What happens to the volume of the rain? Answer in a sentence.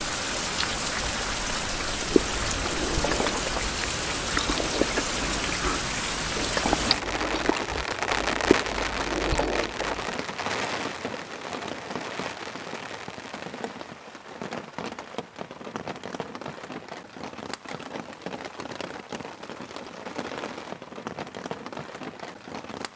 The loudness of the rain goes down.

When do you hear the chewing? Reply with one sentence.
The chewing can be heard from 1.8 to 10.2 s.